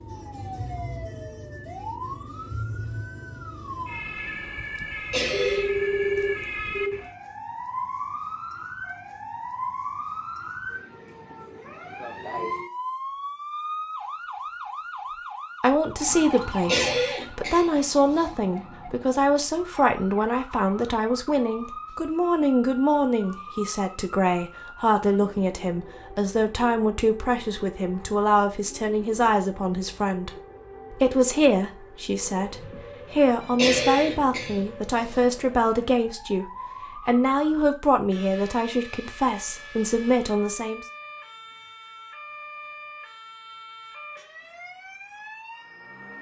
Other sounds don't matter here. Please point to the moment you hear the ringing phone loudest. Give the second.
6 s.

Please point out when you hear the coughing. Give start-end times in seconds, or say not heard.
5.1-5.7, 16.6-18.2, 33.5-35.1.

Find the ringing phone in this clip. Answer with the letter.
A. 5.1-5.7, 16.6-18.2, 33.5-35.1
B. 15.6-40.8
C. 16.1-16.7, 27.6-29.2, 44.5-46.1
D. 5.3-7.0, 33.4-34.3
D.